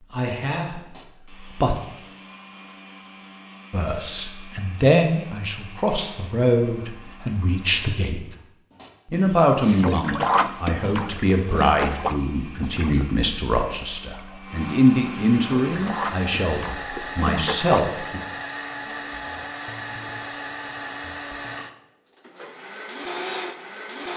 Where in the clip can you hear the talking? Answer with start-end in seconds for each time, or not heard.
0.1-1.8, 3.7-8.3, 9.1-18.2.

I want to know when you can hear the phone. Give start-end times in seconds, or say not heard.
not heard.